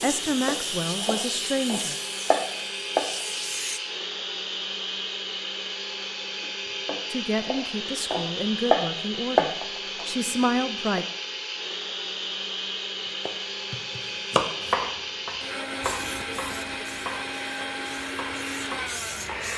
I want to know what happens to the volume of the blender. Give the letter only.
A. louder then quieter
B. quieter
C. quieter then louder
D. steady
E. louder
D.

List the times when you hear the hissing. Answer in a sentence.
You can hear the hissing from 0.0 to 3.8 s and from 15.8 to 19.5 s.